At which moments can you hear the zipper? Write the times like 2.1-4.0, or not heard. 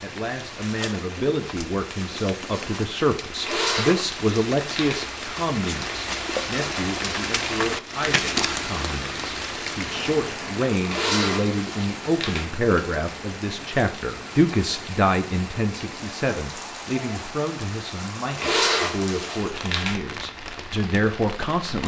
3.4-5.0, 10.8-12.4, 18.4-19.9.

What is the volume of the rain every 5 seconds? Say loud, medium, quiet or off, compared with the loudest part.
medium, loud, medium, medium, medium.